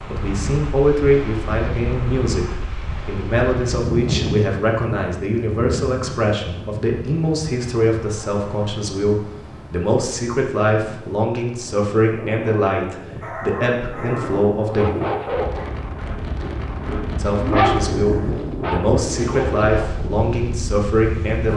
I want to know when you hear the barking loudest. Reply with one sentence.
The volume of the barking peaks at 18 seconds.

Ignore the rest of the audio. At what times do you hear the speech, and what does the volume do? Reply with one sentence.
The speech can be heard from 0.1 to 14.9 s, at a steady volume; and from 17.1 to 21.5 s, at a steady volume.